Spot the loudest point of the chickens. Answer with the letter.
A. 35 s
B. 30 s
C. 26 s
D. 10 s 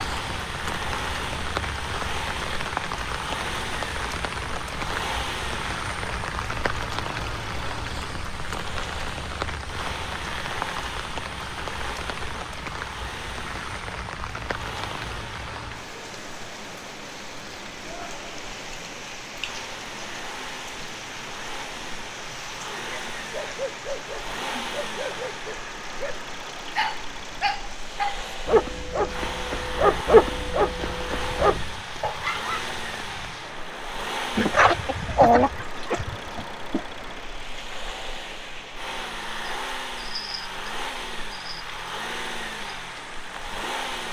A.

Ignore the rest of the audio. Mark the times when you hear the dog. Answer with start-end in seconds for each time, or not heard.
22.7-32.8.